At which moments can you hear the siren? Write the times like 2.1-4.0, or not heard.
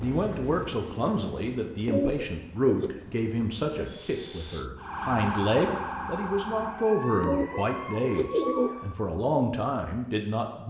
4.8-9.0.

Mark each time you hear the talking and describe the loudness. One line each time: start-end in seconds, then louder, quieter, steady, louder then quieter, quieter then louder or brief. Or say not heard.
0.0-10.6 steady.